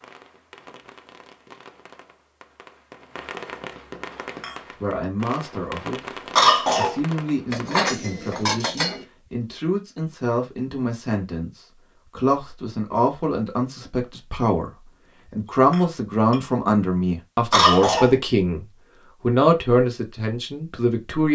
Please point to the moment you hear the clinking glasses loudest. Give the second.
8 s.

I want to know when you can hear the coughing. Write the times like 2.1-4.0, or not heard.
6.3-7.0, 17.5-18.1.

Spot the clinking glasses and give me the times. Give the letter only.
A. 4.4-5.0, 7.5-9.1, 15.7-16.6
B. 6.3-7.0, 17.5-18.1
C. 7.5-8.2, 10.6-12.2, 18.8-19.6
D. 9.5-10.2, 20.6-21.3
A.